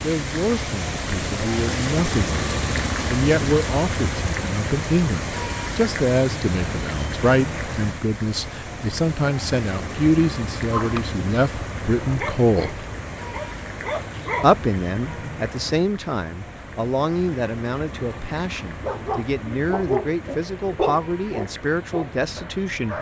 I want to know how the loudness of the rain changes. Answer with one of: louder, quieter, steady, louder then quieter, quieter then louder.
quieter.